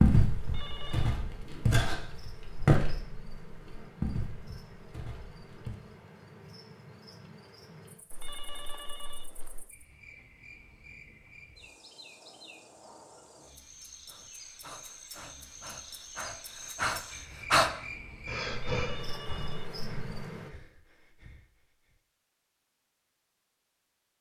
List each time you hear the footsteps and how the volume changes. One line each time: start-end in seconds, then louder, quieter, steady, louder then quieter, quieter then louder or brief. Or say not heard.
0.0-5.8 louder then quieter.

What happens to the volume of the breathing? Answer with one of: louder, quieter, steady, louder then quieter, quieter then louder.
louder then quieter.